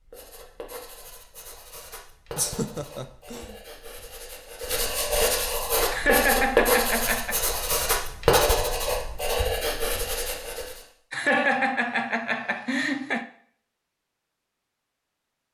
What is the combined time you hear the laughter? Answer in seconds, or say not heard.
5 s.